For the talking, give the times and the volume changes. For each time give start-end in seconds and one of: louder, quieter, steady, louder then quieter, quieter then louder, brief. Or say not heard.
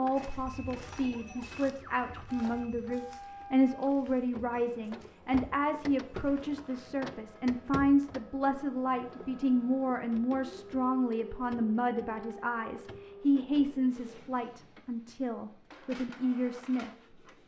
0.0-17.2 steady.